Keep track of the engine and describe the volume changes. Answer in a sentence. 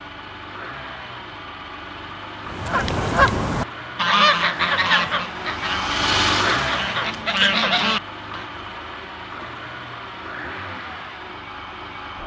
The volume of the engine goes up, then down.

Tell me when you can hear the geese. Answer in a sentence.
The geese can be heard from 2.5 to 8.4 s.